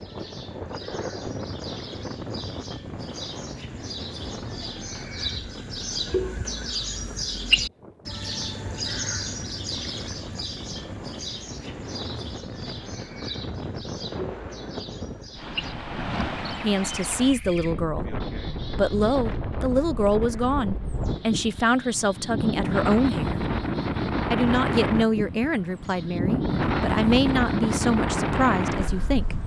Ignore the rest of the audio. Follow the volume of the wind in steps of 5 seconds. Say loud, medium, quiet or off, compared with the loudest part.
medium, quiet, medium, medium, loud, loud.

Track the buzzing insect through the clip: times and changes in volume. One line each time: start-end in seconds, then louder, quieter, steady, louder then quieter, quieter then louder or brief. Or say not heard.
not heard.